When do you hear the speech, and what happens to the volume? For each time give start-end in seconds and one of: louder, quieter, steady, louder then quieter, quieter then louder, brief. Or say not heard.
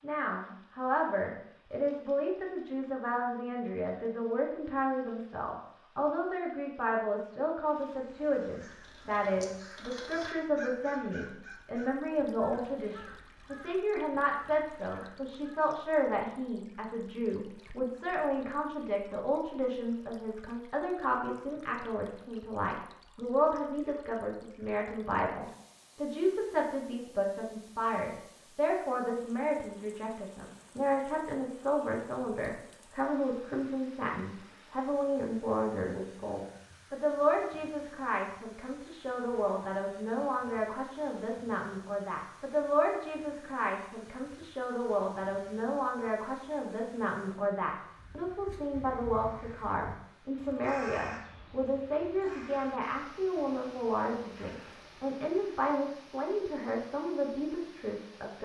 0.0-58.3 steady.